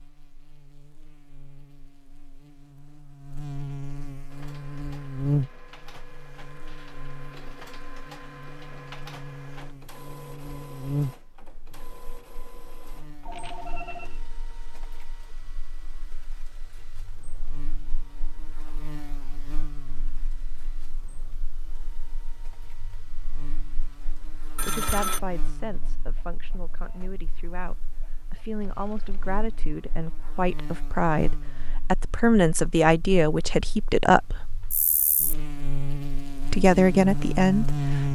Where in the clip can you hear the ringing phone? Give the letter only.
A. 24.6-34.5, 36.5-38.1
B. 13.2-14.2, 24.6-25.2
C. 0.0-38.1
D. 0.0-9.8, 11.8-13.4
B.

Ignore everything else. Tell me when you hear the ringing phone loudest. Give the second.
25 s.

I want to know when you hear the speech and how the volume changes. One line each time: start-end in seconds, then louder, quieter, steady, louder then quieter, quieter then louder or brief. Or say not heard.
24.6-34.5 louder
36.5-38.1 brief.